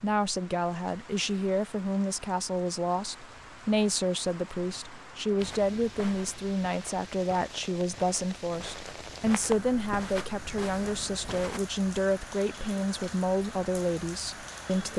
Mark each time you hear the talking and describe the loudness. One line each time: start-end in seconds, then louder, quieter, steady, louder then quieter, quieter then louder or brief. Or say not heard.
0.0-14.9 steady.